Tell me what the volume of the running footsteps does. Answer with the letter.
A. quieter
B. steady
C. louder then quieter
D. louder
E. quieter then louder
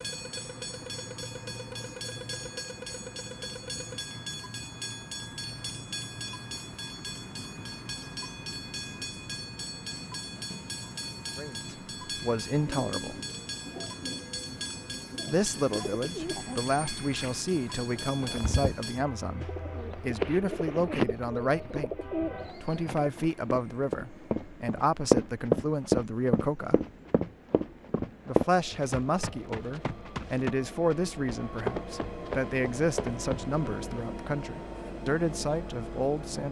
A.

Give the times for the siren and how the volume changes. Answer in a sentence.
You can't hear the siren here.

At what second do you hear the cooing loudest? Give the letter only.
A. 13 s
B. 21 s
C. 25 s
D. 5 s
B.